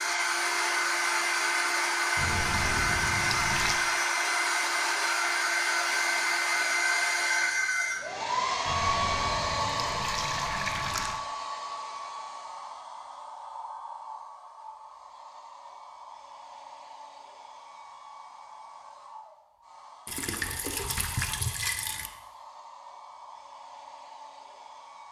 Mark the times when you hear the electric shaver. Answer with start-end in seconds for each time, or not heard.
not heard.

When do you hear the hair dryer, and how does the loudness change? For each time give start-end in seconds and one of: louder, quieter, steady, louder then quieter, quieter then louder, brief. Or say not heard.
0.0-25.0 quieter.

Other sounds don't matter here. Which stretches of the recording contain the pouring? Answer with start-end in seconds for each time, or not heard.
2.1-3.8, 8.7-11.2, 20.1-22.1.